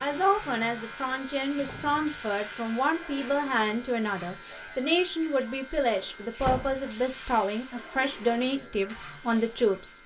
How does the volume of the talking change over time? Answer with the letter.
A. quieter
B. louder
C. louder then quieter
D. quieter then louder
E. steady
E.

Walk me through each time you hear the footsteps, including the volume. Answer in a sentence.
You can't hear the footsteps here.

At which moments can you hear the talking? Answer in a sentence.
You can hear the talking from 0.0 to 10.0 s.